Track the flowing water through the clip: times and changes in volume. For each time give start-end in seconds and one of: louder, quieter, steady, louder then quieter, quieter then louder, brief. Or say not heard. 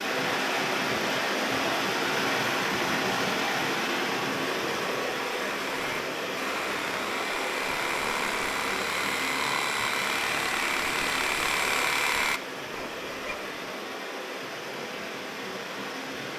0.0-16.3 quieter.